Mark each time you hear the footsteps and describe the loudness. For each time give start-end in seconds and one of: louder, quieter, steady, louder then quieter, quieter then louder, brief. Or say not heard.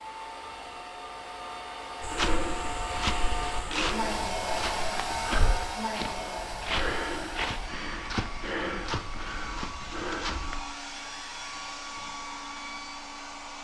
2.0-10.6 steady.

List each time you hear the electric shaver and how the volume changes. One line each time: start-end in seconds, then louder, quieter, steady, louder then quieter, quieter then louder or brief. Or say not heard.
not heard.